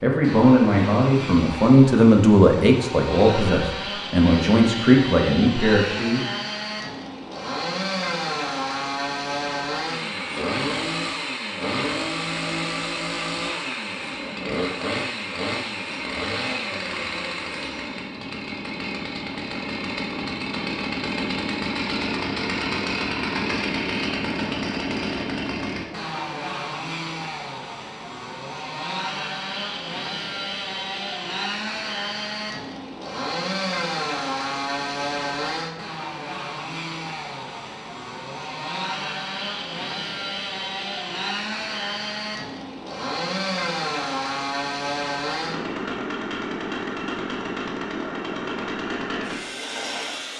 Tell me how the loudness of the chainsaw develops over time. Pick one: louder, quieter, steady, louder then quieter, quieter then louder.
steady.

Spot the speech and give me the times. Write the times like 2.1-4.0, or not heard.
0.0-6.2.